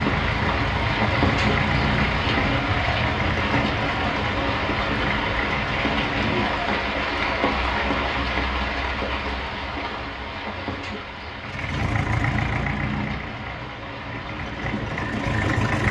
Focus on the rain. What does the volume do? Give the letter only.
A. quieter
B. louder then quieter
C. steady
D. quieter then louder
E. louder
A.